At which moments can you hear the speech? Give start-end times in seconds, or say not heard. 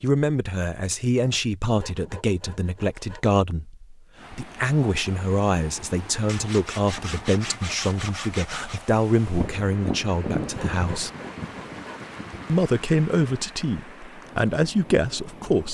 0.0-11.1, 12.4-15.7.